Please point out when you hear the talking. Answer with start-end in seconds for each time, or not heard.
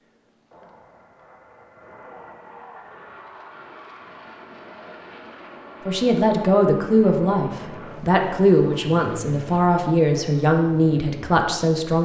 5.8-12.0.